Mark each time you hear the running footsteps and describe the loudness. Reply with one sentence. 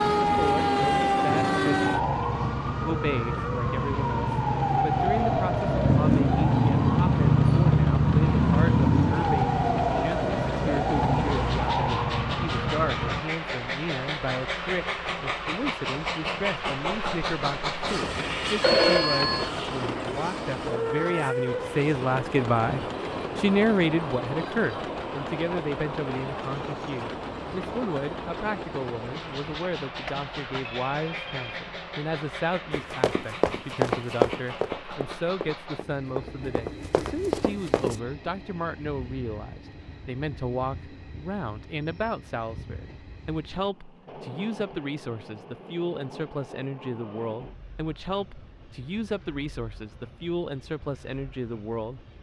The running footsteps can be heard from 32.7 to 38.0 s, getting quieter then louder.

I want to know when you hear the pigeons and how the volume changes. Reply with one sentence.
You can't hear the pigeons here.